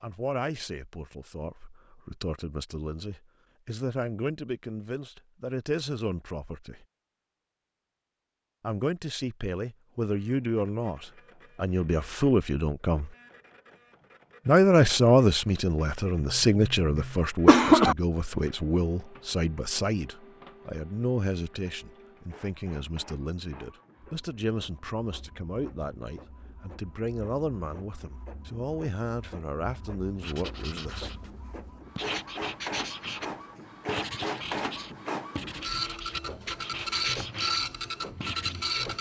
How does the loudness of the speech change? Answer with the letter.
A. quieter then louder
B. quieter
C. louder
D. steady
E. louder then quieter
E.